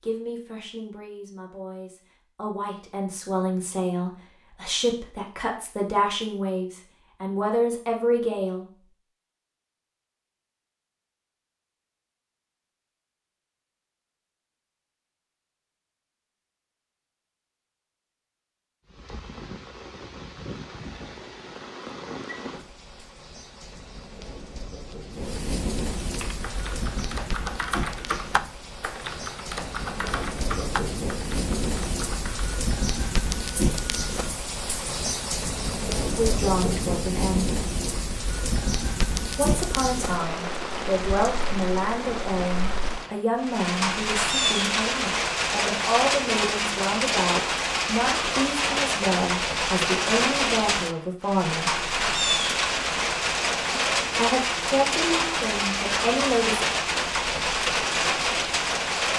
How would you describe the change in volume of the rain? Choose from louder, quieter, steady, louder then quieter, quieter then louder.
louder.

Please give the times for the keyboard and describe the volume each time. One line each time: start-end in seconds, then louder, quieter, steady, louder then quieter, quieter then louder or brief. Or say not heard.
26.0-32.5 louder then quieter.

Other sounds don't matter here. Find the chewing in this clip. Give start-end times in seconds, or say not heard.
not heard.